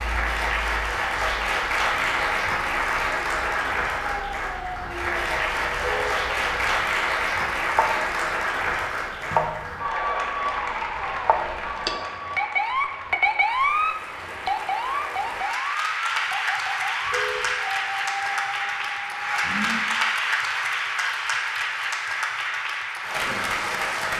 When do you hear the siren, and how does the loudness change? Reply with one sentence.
You can hear the siren from 0.0 to 19.9 s, getting louder then quieter.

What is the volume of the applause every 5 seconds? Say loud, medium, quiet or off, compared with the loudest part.
loud, loud, medium, loud, loud.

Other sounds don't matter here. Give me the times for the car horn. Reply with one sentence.
You can hear the car horn from 5.8 to 6.2 s and from 17.1 to 17.6 s.